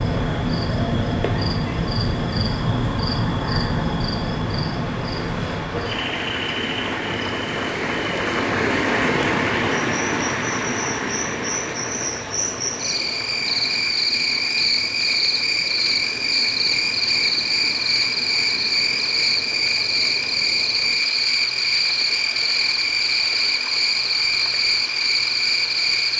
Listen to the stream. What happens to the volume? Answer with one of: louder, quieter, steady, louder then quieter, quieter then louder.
louder then quieter.